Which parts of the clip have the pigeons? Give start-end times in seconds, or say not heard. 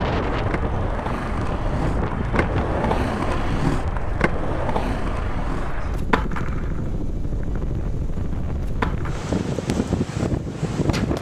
not heard.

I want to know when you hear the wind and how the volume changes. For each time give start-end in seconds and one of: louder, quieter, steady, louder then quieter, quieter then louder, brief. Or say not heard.
0.0-11.1 quieter then louder.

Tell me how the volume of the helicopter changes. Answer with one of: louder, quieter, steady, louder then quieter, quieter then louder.
steady.